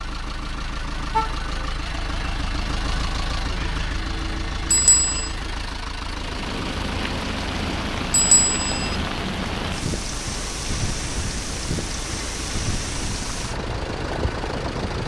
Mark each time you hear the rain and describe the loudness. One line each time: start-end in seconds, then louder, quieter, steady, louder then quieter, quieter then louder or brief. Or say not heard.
6.0-15.0 steady.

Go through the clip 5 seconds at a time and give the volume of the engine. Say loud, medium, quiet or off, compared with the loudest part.
loud, loud, medium.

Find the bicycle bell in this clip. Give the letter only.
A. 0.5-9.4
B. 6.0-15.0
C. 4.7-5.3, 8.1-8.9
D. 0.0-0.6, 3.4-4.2
C.